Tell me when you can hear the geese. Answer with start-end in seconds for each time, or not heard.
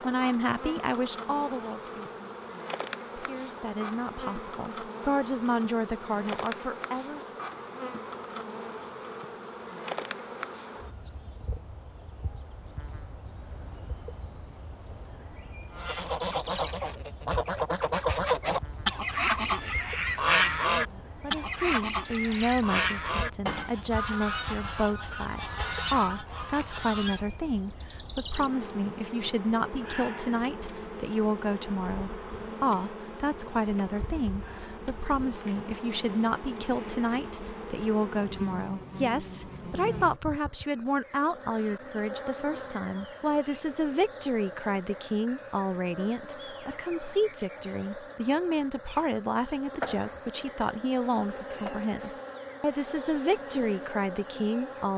15.7-27.2.